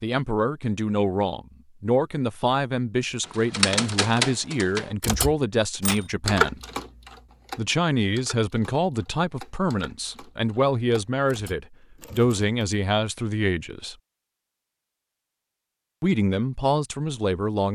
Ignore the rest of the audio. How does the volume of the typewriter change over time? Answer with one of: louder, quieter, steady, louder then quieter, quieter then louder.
quieter.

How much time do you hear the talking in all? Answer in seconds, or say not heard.
15 s.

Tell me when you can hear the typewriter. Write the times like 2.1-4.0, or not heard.
3.2-12.6.